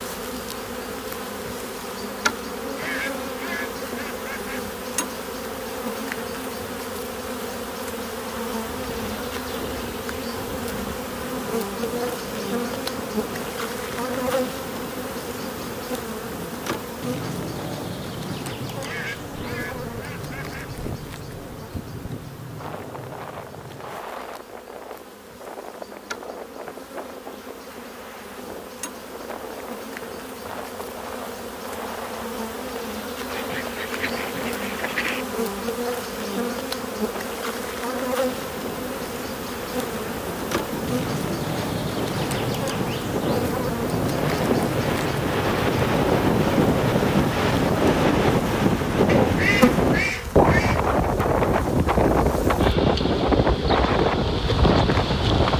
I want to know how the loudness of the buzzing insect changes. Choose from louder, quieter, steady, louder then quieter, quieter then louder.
quieter then louder.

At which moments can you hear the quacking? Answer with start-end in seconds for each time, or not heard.
2.8-4.6, 18.8-20.6, 33.3-35.2, 49.0-51.0.